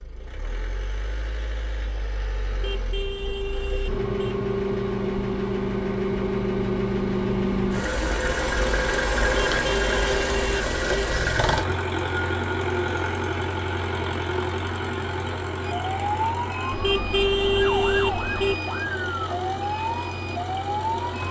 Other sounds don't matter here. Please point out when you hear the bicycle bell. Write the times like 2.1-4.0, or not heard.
not heard.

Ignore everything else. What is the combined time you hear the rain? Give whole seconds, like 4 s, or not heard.
not heard.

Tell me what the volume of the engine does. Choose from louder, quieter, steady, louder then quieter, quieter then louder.
louder then quieter.